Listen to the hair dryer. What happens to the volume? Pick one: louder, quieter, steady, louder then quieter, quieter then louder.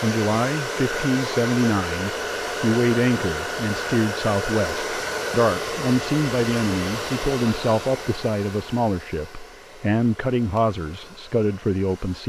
quieter.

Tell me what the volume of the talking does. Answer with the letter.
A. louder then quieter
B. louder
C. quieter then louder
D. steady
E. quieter
D.